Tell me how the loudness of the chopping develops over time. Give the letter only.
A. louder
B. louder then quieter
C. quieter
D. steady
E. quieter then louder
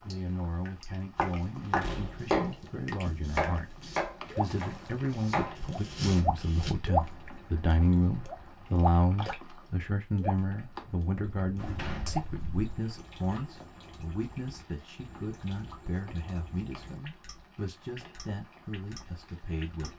E.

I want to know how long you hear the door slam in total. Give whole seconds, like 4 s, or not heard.
2 s.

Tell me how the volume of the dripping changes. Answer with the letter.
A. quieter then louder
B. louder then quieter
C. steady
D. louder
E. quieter
B.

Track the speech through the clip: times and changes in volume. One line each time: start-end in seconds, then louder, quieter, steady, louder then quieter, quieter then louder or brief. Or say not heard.
0.0-19.9 louder then quieter.